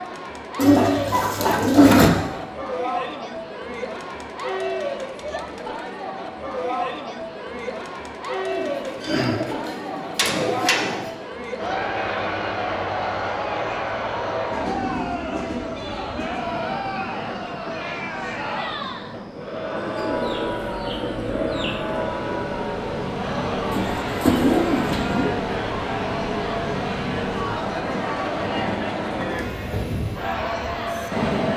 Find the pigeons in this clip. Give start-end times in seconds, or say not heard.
0.6-2.1, 8.5-11.1, 19.8-21.8, 23.7-25.3.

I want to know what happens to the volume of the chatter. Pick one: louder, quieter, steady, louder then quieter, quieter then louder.
steady.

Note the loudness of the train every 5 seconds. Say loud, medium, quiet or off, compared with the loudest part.
off, off, loud, medium, loud, loud, loud.